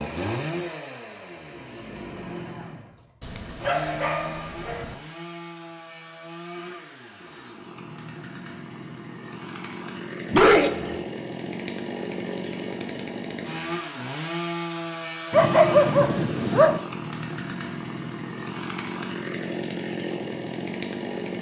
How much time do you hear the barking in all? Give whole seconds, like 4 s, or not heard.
4 s.